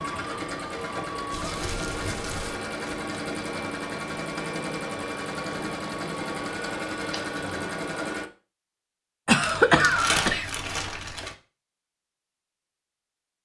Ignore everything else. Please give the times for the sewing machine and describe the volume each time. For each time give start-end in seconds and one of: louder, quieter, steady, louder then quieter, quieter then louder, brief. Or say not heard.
0.0-8.3 steady.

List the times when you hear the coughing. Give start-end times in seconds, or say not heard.
9.2-10.5.